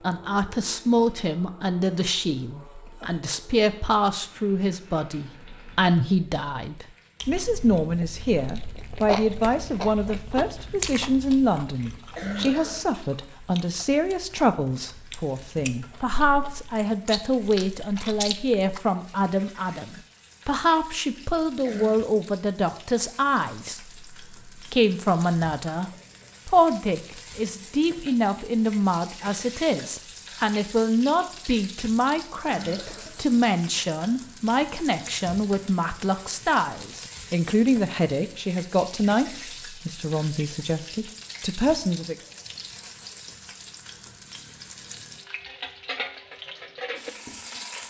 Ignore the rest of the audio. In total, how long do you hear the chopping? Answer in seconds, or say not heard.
not heard.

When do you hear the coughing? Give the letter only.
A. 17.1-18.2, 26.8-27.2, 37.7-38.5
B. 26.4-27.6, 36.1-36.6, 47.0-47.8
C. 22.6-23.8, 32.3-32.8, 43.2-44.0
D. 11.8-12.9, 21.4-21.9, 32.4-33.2
D.